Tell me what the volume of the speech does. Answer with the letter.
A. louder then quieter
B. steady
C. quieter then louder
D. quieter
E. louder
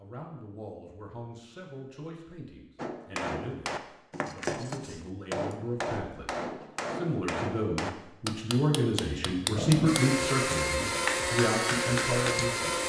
E.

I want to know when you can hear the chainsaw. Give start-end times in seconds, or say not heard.
9.6-12.8.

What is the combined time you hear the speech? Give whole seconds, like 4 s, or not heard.
13 s.